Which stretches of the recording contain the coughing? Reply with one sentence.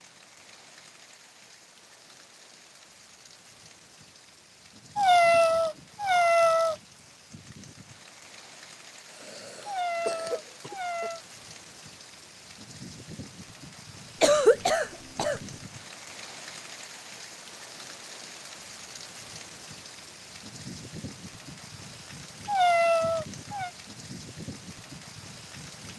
The coughing can be heard from 9.1 to 11.1 s and from 14.2 to 15.4 s.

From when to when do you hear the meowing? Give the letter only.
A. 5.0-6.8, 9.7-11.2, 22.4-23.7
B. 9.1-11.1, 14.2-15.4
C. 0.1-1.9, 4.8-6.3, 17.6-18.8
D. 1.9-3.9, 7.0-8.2
A.